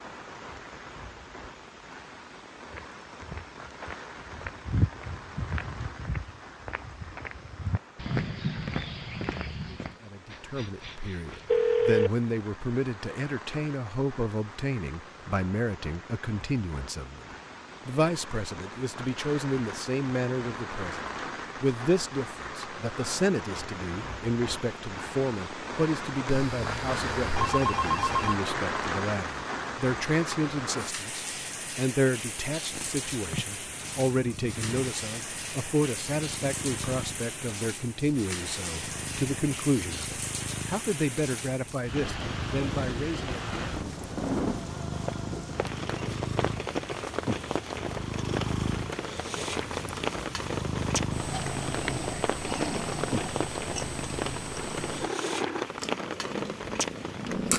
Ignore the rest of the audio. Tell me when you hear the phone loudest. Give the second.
12 s.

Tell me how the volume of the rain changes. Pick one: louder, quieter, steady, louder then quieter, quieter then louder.
louder.